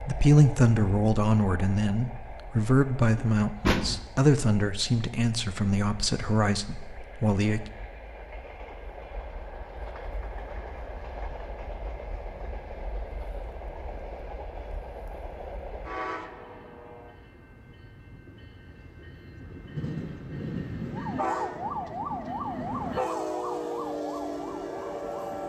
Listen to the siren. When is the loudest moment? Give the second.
22 s.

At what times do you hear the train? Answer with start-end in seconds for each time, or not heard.
0.0-25.4.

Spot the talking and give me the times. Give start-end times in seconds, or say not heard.
0.0-7.7.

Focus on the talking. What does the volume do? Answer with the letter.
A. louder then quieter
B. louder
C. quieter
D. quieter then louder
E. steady
C.